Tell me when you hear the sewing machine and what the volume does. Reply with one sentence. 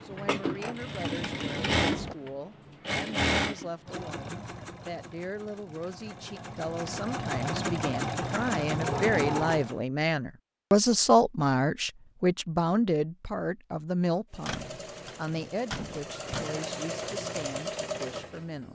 You can hear the sewing machine from 0.0 to 9.8 s, getting quieter then louder; and from 14.3 to 18.7 s, getting louder.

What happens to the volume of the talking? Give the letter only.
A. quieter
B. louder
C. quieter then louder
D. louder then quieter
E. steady
D.